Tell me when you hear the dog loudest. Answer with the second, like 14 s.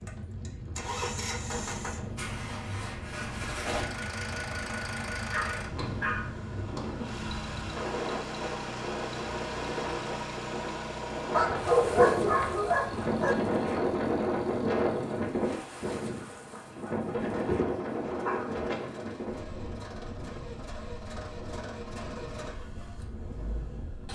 12 s.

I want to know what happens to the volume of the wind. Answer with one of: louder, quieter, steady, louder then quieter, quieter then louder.
louder then quieter.